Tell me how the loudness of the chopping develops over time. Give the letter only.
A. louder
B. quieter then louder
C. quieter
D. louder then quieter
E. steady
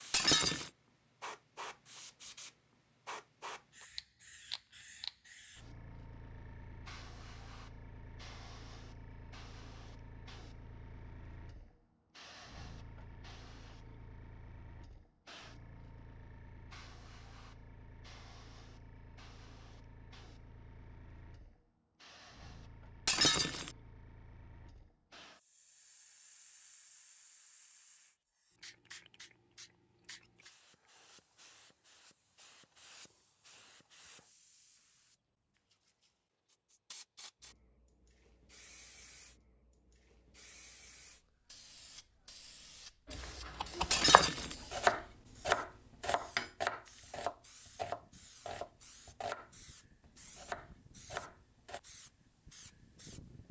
C.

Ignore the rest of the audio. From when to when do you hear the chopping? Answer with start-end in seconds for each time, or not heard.
43.1-51.8.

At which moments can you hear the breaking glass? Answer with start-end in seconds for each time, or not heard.
0.1-0.7, 23.1-23.7, 43.9-44.5.